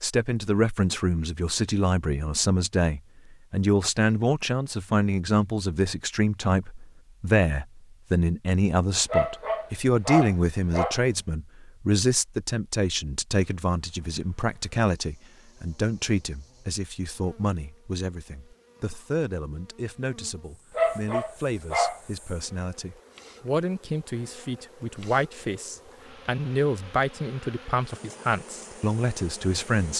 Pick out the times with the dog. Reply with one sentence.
You can hear the dog from 9.1 to 11.0 s and from 20.8 to 22.0 s.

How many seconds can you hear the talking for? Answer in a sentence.
The talking can be heard for 30 seconds in total.